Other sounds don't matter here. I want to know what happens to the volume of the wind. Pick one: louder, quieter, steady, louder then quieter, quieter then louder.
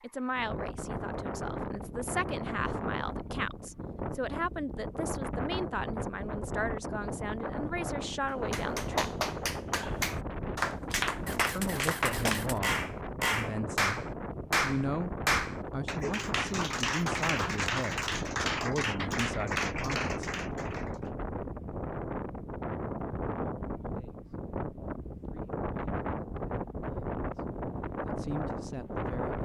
steady.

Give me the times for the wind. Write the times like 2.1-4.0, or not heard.
0.0-29.4.